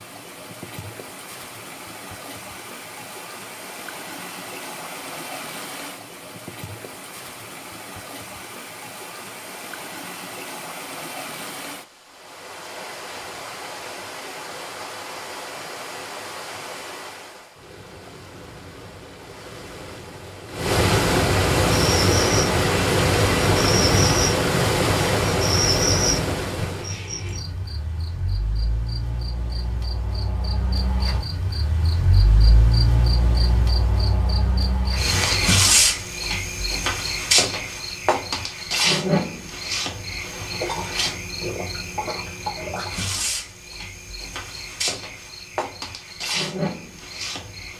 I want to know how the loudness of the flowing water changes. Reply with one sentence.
The volume of the flowing water goes up.